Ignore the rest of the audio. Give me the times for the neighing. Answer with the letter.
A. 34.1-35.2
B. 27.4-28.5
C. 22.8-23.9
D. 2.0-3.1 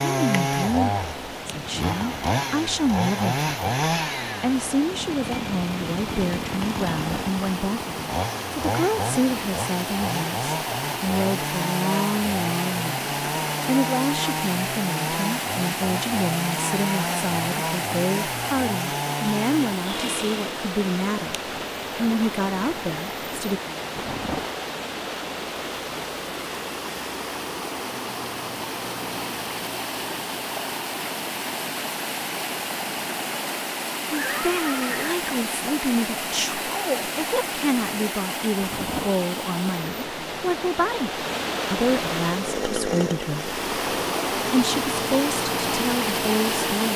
A.